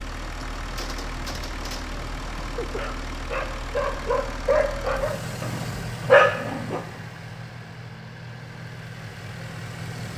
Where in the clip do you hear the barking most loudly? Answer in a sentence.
The volume of the barking peaks at 6 seconds.